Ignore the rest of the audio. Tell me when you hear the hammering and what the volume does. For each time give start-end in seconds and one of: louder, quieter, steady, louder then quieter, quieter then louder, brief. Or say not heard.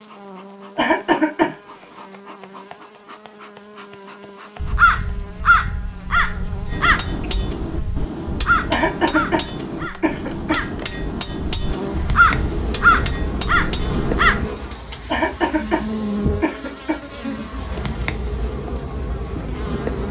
6.7-14.2 steady.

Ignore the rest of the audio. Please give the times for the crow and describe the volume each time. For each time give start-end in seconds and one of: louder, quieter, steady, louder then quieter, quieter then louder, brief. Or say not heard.
4.5-14.5 quieter then louder.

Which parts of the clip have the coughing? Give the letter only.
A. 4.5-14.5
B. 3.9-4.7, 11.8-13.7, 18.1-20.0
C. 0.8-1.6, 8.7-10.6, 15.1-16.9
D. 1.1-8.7
C.